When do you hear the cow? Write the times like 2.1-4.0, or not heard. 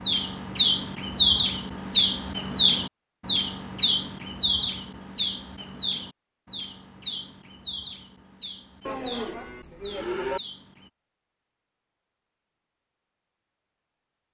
8.8-10.4.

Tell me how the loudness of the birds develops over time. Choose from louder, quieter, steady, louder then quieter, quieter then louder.
quieter.